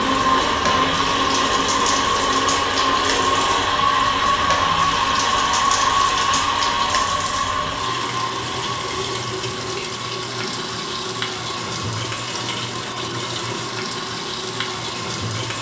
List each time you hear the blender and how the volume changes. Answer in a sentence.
You can hear the blender from 0.0 to 15.5 s, getting quieter.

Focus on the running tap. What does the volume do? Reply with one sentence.
The volume of the running tap stays about the same.